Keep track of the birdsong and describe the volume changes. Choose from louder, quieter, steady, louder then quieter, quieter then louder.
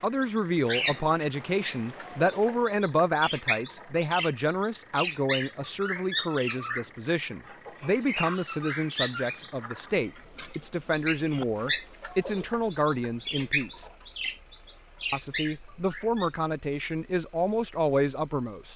steady.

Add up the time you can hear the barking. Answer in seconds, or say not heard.
not heard.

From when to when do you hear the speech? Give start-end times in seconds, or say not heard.
0.0-13.8, 15.1-18.7.